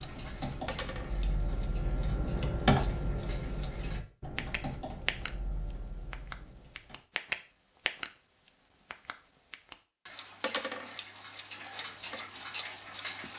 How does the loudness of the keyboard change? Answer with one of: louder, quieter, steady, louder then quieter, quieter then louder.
louder then quieter.